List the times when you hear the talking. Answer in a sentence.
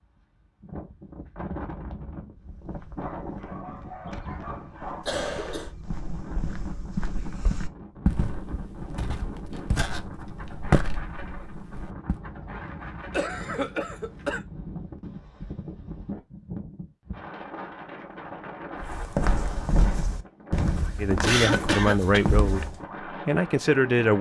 You can hear the talking from 20.9 to 24.1 s.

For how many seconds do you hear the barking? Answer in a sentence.
You can hear the barking for 2 seconds altogether.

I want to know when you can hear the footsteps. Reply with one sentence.
You can hear the footsteps from 2.4 to 12.2 s and from 18.8 to 22.9 s.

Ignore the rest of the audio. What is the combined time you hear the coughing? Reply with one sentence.
The coughing can be heard for 3 seconds in total.